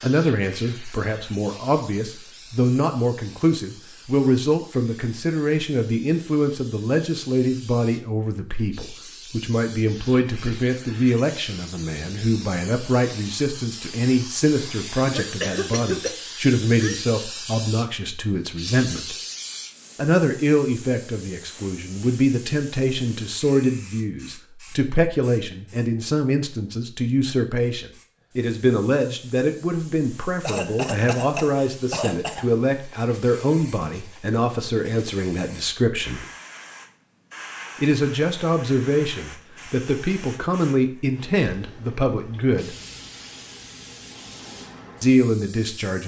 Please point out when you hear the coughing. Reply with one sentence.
The coughing can be heard from 15.1 to 17.1 s and from 30.4 to 32.5 s.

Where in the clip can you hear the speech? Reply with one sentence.
The speech can be heard from 0.0 to 19.1 s, from 19.9 to 36.2 s, from 37.8 to 42.8 s and from 45.0 to 46.0 s.